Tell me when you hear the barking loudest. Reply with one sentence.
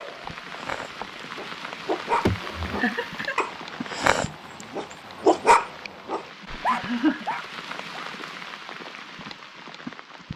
The volume of the barking peaks at 5 seconds.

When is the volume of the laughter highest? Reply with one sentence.
The loudest moment of the laughter is at 7 seconds.